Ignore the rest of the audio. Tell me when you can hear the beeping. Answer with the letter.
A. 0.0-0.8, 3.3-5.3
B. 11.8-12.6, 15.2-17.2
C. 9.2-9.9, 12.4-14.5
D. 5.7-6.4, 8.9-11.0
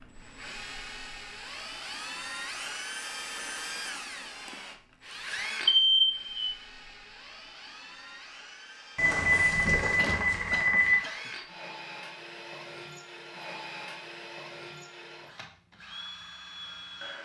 D.